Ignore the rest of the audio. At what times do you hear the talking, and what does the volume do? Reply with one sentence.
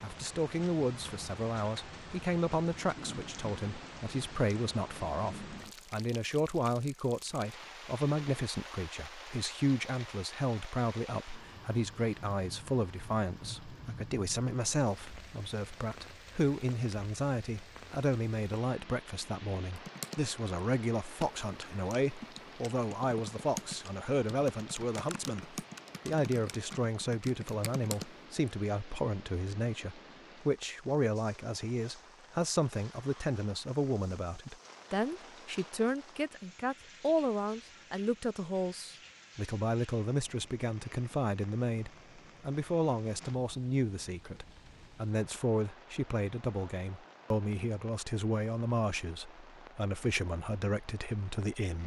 The talking can be heard from 0.0 to 51.8 s, at a steady volume.